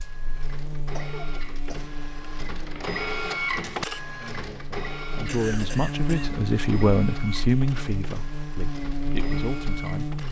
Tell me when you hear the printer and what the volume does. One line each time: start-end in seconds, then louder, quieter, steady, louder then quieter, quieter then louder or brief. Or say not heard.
0.0-10.2 louder then quieter.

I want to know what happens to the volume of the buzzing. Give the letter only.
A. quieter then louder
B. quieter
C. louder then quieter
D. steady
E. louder
A.